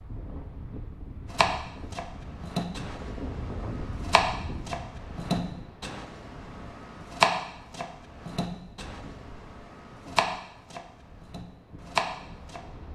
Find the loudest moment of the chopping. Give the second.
7 s.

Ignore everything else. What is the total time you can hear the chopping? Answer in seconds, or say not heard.
11 s.